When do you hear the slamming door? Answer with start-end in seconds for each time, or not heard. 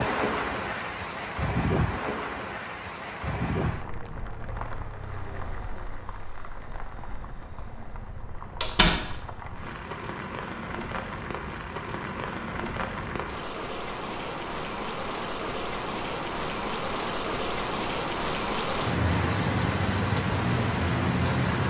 8.6-9.1.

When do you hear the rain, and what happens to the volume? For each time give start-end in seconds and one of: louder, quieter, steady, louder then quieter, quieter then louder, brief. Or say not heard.
0.0-21.6 quieter then louder.